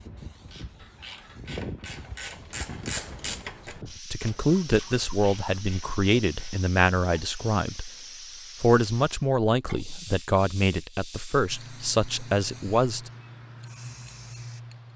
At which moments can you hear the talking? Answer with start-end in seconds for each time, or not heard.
4.0-7.9, 8.6-13.1.